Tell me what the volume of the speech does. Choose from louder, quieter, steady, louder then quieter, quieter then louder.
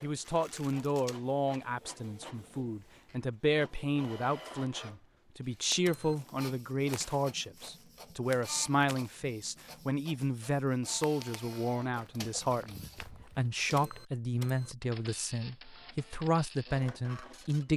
steady.